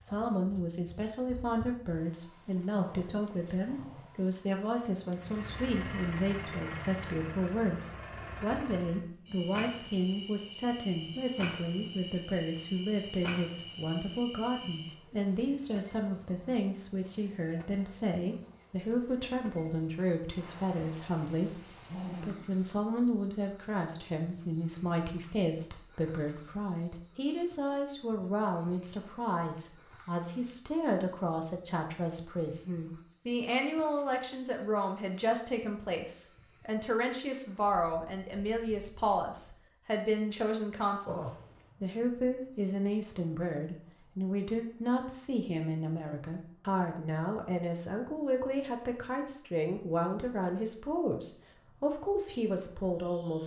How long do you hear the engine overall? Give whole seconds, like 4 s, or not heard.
4 s.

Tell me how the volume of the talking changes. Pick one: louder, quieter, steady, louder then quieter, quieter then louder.
steady.